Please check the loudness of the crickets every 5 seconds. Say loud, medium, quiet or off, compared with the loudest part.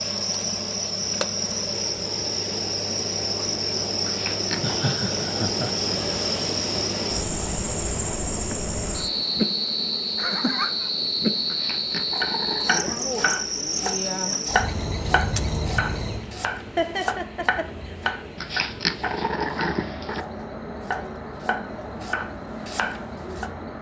loud, loud, loud, medium, quiet.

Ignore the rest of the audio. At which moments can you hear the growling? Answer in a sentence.
You can hear the growling from 4.0 to 4.8 s, from 11.4 to 13.3 s and from 18.4 to 20.2 s.